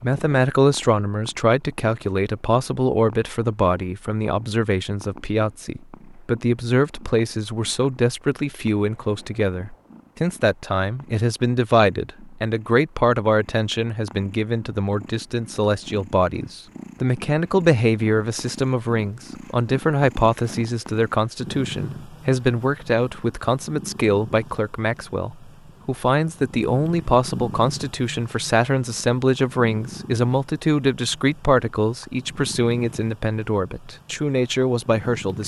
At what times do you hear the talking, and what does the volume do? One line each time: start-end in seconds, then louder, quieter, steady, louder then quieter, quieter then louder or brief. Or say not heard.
0.0-35.4 steady.